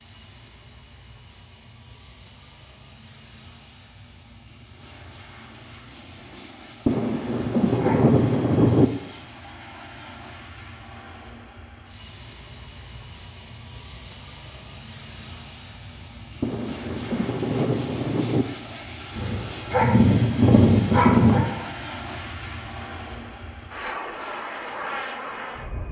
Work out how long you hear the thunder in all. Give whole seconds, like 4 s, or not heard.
4 s.